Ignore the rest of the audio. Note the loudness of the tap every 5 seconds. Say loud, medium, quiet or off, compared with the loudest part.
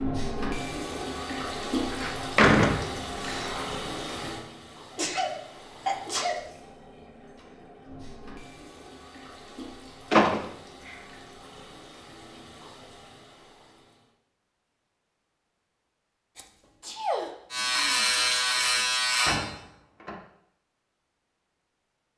loud, quiet, quiet, off, off.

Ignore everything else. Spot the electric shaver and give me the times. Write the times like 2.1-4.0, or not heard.
17.5-19.4.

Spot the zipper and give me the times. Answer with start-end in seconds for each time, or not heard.
not heard.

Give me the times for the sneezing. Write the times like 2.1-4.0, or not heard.
4.9-6.5, 16.4-18.1.